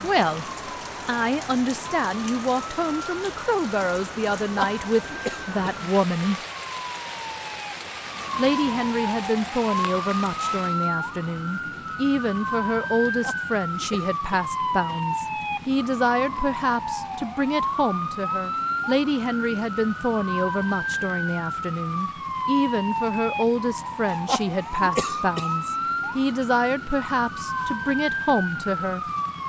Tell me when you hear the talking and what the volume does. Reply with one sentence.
You can hear the talking briefly from 0.0 to 0.5 s; from 1.1 to 6.4 s, at a steady volume; and from 8.3 to 29.1 s, at a steady volume.